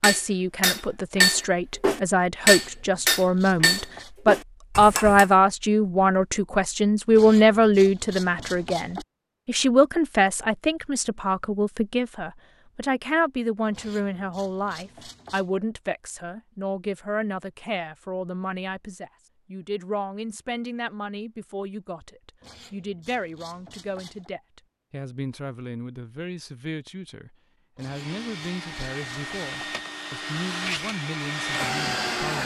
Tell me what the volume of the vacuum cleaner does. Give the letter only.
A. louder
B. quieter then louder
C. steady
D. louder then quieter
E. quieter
A.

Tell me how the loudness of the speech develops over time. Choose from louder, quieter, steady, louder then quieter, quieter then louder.
quieter.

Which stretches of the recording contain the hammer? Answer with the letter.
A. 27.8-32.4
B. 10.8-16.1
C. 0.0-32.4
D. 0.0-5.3
D.